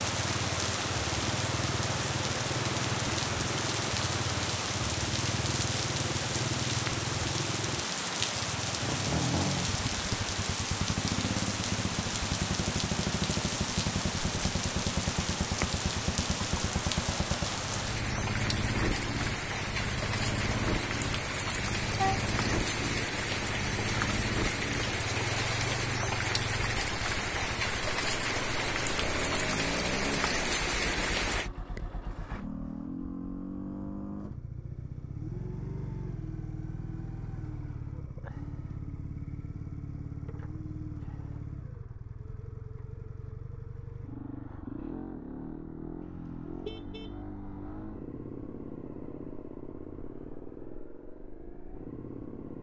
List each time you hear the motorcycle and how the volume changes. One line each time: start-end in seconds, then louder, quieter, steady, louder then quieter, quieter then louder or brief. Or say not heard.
0.0-52.5 quieter.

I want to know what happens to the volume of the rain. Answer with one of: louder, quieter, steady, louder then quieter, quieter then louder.
steady.